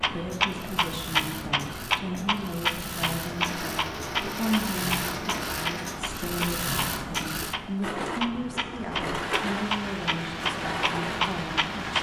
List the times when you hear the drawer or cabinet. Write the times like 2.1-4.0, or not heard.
not heard.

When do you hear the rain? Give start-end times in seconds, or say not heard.
3.1-11.9.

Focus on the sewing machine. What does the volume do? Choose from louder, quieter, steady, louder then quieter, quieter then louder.
louder.